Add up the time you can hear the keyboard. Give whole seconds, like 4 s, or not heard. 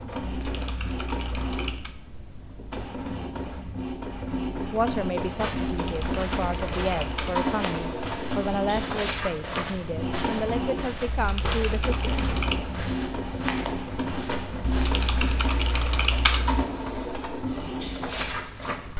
7 s.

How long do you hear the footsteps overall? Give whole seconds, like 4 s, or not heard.
10 s.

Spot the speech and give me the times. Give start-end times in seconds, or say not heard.
4.6-12.1.